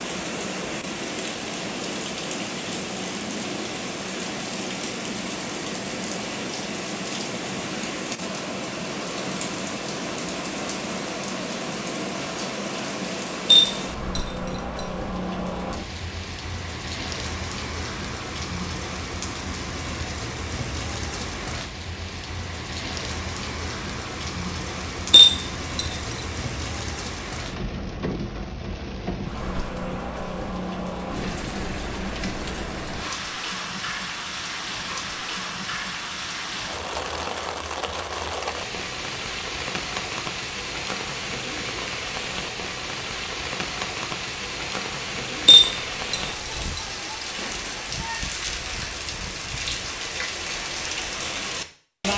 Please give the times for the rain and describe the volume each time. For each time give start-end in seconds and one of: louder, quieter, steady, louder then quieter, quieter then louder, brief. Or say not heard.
0.0-52.1 steady.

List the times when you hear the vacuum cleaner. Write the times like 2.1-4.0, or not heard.
not heard.